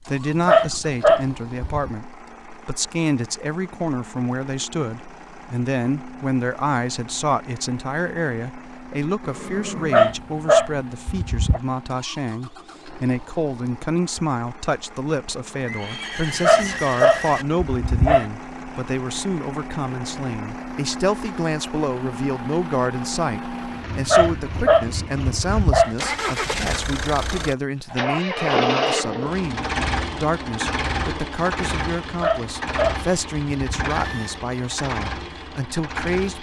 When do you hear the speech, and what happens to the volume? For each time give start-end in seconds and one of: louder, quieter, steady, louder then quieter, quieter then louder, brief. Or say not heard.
0.0-36.3 steady.